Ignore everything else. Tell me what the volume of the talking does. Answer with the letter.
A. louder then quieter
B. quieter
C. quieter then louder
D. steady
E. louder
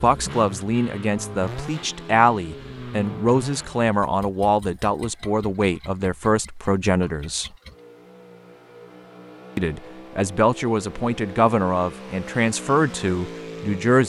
D.